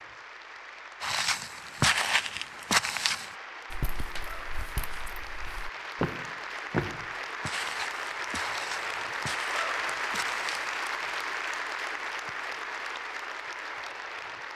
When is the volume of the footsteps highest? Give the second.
2 s.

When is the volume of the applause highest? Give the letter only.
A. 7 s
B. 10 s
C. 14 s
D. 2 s
B.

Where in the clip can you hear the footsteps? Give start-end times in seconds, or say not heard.
1.0-10.7.